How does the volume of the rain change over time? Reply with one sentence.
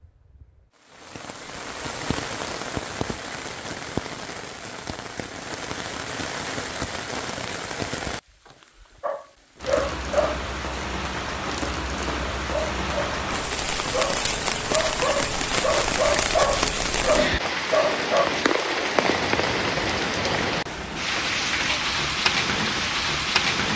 The volume of the rain goes up.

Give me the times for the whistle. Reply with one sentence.
The whistle can't be heard in this clip.